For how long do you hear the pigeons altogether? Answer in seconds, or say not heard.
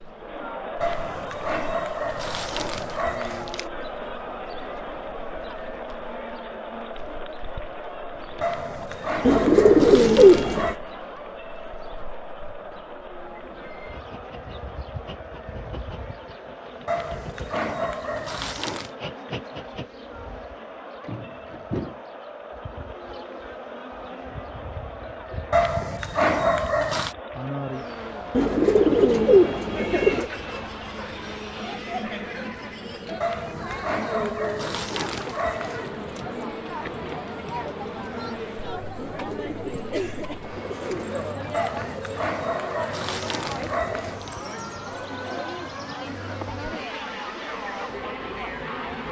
6 s.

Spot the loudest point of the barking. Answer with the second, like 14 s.
26 s.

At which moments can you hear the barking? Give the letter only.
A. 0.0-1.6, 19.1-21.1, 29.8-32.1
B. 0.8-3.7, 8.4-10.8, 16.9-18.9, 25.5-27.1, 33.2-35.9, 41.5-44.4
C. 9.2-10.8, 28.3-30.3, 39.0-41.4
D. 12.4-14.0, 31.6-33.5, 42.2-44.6
B.